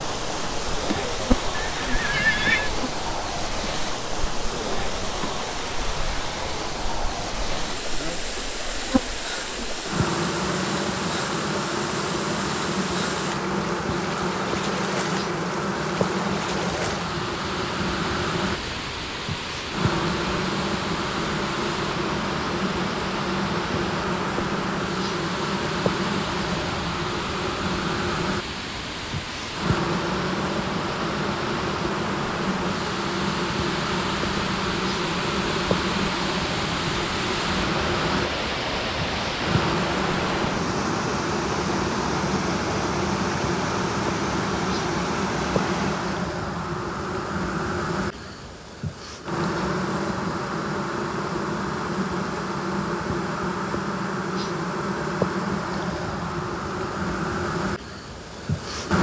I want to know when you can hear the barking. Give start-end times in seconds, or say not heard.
not heard.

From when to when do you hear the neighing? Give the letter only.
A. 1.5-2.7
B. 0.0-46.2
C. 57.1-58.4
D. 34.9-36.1
A.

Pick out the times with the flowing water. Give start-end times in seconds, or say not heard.
0.0-46.2.